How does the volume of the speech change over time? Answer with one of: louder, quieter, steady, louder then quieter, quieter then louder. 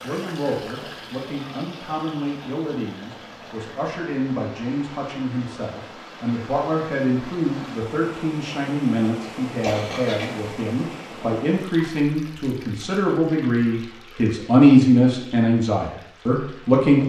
louder.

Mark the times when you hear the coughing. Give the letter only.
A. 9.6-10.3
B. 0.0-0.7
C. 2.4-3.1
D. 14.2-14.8
A.